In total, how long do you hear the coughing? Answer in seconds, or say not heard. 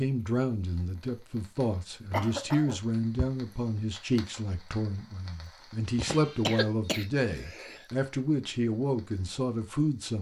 3 s.